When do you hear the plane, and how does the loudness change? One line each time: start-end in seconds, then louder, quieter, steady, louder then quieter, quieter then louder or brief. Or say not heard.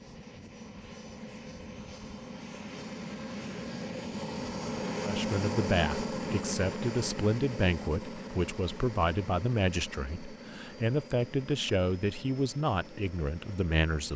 0.0-14.1 louder then quieter.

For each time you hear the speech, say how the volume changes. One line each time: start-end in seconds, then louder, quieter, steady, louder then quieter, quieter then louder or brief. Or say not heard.
5.0-14.1 steady.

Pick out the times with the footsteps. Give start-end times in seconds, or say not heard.
not heard.